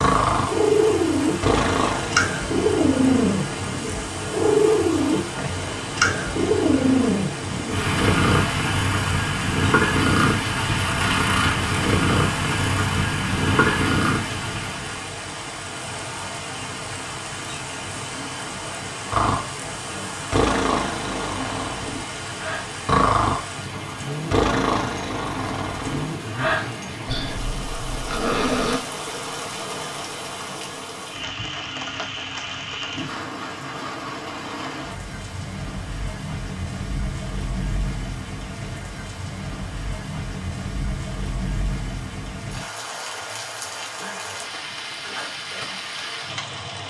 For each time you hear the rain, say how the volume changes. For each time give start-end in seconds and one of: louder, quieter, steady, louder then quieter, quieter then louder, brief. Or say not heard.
0.0-46.8 steady.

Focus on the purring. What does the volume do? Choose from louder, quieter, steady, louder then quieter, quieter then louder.
steady.